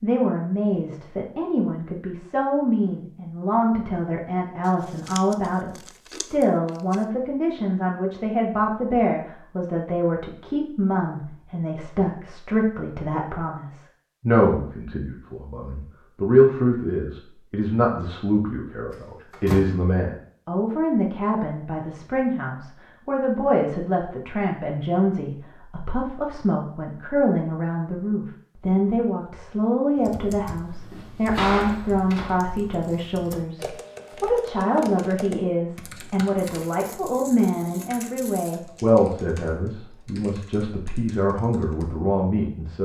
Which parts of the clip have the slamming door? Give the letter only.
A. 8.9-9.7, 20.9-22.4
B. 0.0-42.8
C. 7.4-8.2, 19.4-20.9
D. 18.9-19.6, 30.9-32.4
D.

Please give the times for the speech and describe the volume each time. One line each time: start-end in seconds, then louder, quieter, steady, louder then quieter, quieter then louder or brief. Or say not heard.
0.0-42.8 steady.